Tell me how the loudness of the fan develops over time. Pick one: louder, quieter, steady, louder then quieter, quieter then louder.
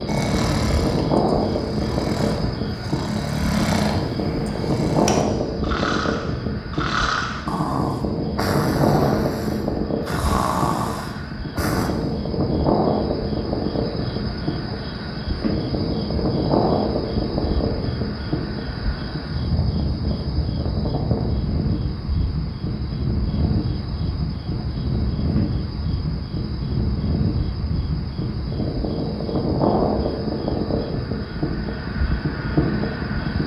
steady.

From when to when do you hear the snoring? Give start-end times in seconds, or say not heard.
0.1-11.9.